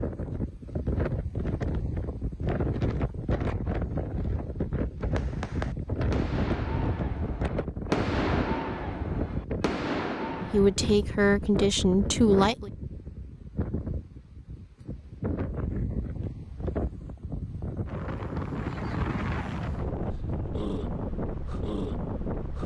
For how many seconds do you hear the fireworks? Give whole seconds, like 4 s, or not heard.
6 s.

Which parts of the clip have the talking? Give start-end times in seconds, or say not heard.
10.5-12.7.